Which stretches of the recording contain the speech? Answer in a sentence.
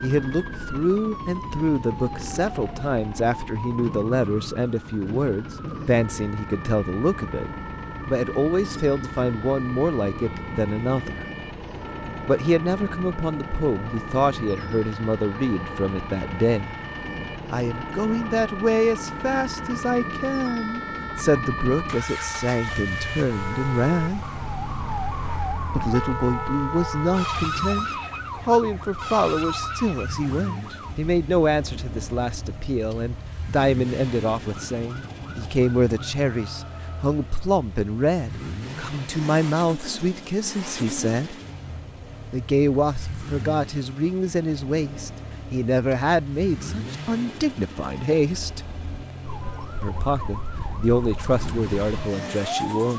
The speech can be heard from 0.0 to 11.2 s, from 12.2 to 16.7 s, from 17.5 to 24.2 s, from 25.7 to 41.4 s, from 42.3 to 48.6 s and from 49.8 to 52.9 s.